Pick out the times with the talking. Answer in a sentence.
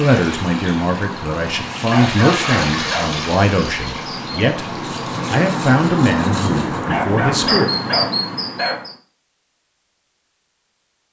The talking can be heard from 0.0 to 7.7 s.